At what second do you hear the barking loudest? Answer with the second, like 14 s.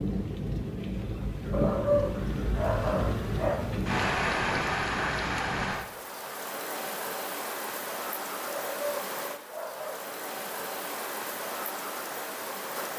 2 s.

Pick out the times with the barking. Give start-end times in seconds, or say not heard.
1.5-3.5, 8.4-10.1.